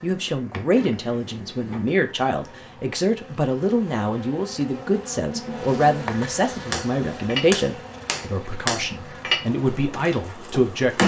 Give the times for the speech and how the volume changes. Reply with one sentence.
You can hear the speech from 0.0 to 11.0 s, at a steady volume.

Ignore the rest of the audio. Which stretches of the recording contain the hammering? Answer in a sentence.
The hammering can be heard from 6.7 to 11.0 s.